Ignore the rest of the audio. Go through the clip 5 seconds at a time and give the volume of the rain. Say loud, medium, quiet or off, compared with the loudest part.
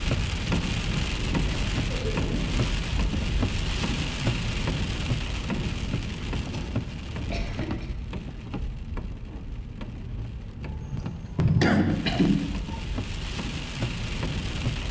loud, medium, medium.